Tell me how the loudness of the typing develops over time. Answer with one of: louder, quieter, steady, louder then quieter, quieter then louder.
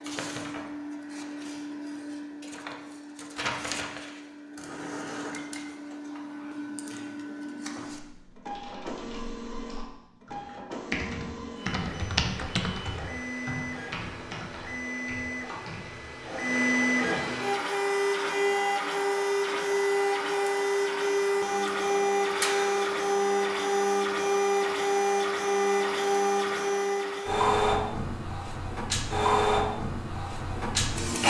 louder then quieter.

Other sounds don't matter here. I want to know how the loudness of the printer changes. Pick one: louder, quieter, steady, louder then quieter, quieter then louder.
louder.